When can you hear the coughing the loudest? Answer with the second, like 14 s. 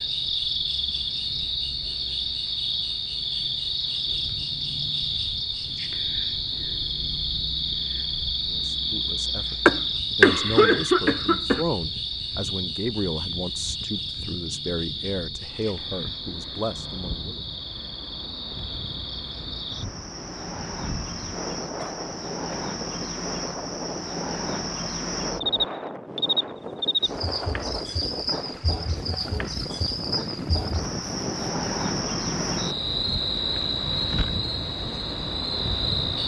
10 s.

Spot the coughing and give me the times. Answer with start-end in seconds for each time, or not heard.
9.7-11.7, 21.8-22.7.